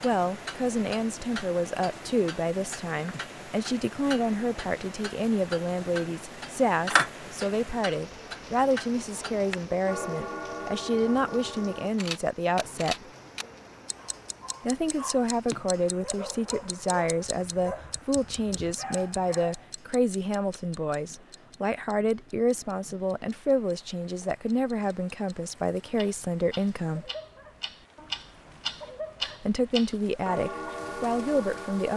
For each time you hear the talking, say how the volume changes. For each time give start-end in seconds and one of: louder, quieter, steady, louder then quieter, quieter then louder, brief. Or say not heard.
0.0-13.1 steady
14.6-27.1 steady
29.2-31.9 brief.